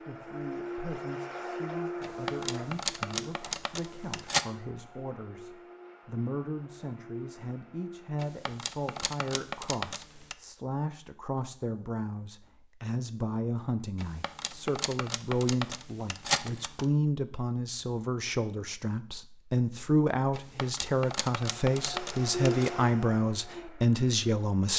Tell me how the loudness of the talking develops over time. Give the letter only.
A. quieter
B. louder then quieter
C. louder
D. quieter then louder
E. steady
C.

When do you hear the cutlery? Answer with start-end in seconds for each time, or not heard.
2.0-4.5, 8.2-10.3, 13.9-16.9, 20.3-22.7.